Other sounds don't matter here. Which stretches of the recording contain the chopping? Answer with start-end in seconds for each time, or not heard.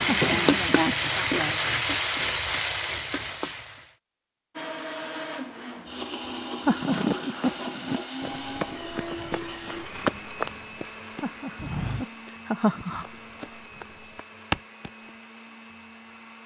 not heard.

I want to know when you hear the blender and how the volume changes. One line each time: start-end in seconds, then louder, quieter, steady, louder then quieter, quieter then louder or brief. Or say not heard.
4.5-16.4 quieter.